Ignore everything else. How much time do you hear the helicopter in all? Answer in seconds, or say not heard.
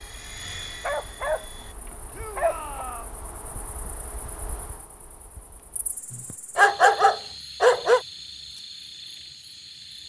2 s.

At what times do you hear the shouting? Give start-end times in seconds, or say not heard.
2.1-3.1.